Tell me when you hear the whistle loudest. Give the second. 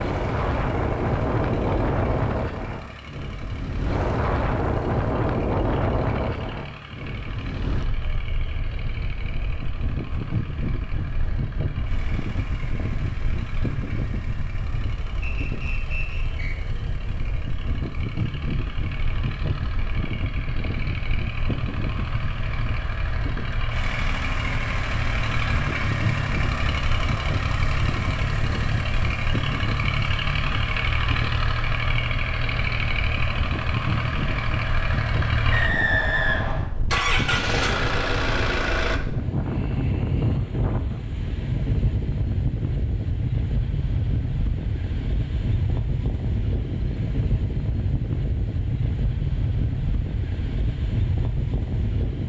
36 s.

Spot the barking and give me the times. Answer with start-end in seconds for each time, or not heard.
not heard.